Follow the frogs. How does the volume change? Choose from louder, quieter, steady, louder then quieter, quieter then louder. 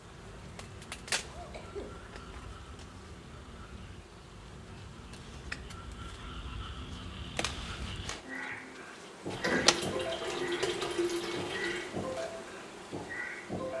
louder.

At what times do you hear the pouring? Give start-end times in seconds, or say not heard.
9.3-11.9.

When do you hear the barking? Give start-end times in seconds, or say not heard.
not heard.